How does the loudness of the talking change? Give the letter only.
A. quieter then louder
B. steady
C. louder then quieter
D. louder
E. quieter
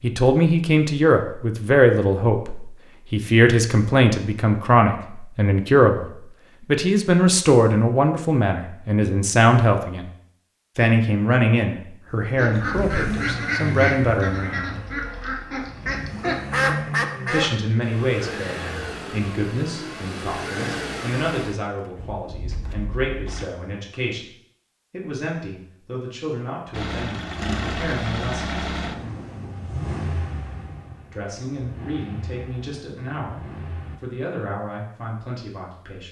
E.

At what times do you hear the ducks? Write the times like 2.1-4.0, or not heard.
12.3-17.6.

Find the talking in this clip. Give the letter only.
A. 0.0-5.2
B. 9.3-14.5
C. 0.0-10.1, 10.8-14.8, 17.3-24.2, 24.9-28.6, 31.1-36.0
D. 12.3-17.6
C.